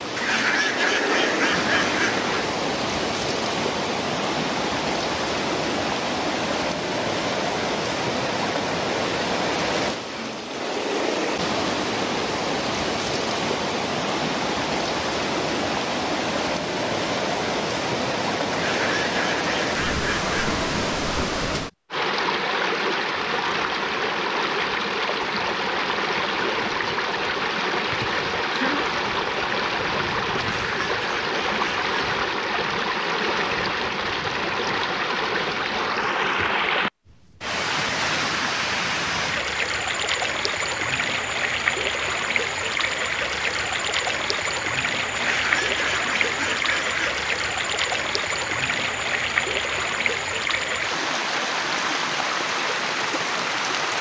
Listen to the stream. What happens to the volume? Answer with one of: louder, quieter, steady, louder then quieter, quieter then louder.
steady.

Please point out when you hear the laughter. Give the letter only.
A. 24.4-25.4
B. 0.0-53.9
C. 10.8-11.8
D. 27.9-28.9
D.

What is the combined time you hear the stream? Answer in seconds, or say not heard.
54 s.